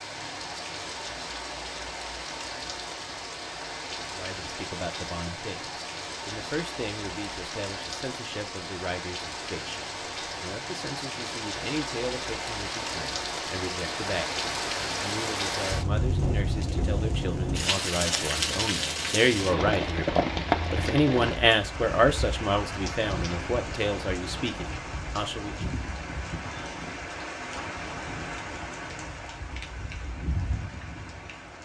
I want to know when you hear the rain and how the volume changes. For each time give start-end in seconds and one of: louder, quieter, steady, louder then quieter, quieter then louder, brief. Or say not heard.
0.0-31.5 louder then quieter.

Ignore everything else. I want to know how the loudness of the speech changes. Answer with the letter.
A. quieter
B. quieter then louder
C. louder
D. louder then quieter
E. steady
C.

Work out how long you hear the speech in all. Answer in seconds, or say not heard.
21 s.